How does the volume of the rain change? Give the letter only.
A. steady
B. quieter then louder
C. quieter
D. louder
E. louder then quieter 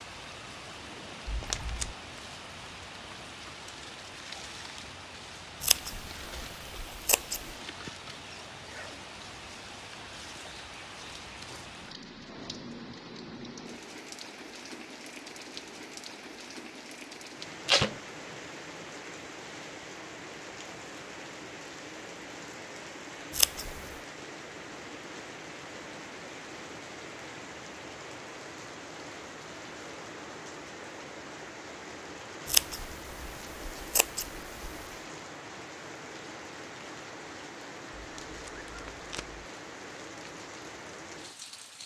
A.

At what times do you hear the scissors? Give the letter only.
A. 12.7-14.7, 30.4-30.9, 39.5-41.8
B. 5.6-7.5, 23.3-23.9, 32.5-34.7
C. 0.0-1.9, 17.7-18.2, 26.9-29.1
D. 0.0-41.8
B.